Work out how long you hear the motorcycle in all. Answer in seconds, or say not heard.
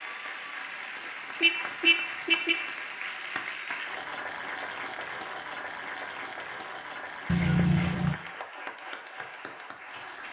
not heard.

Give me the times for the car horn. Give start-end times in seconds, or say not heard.
1.4-2.7, 7.2-8.2.